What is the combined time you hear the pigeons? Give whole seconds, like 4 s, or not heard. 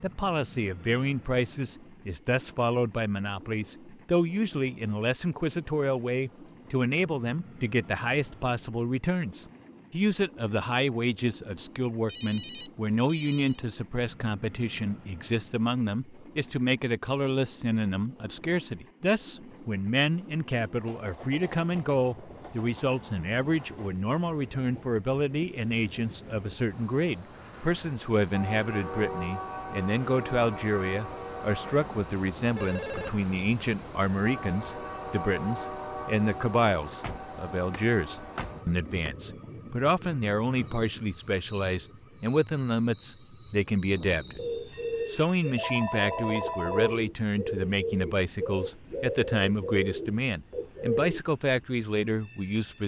7 s.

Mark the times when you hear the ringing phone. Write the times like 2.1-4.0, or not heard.
12.1-13.6, 32.5-33.2, 45.5-47.0.